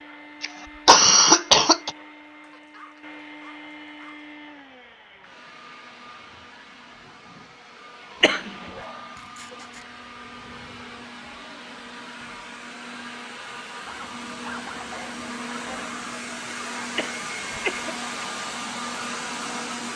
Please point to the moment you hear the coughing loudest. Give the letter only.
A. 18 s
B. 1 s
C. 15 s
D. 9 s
B.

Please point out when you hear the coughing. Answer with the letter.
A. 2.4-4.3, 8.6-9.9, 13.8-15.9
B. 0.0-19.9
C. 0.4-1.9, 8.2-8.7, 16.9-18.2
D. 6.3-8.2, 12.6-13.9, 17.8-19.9
C.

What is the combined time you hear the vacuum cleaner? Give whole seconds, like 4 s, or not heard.
20 s.